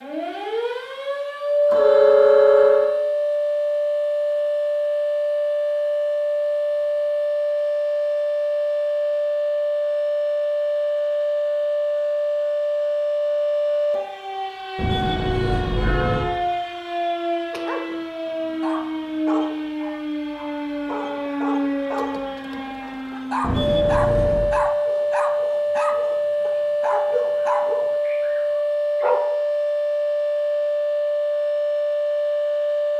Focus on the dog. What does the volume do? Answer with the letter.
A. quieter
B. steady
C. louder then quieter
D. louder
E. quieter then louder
D.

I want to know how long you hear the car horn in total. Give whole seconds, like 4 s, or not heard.
4 s.